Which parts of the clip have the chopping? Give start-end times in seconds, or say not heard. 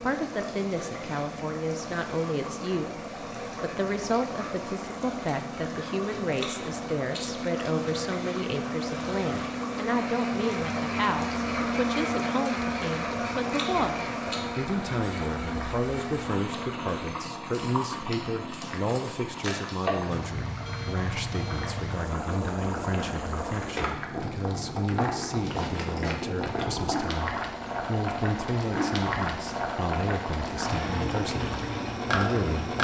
not heard.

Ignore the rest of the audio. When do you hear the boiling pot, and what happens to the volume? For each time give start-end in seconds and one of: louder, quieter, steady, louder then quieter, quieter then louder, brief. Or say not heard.
0.0-32.7 louder.